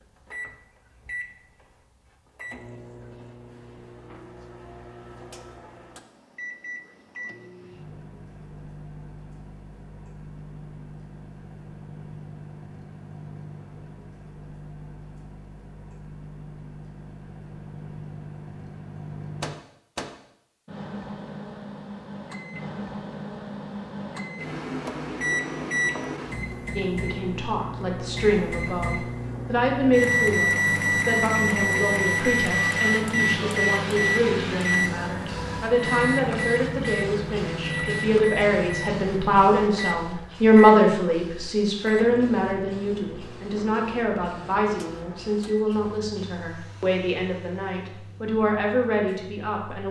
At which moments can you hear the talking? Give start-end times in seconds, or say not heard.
26.8-49.8.